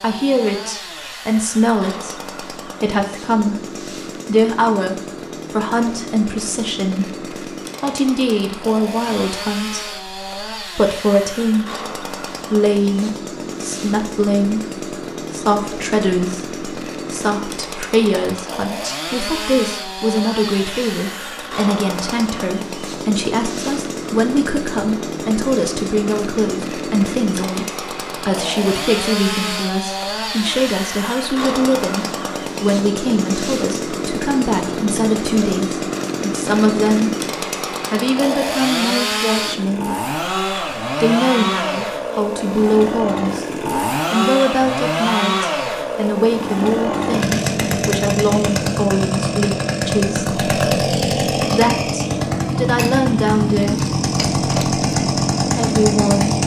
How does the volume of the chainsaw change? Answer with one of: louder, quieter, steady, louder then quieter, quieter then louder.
louder.